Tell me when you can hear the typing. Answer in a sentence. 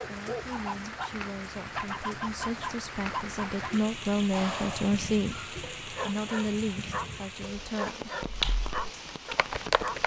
The typing can be heard from 8.2 to 10.0 s.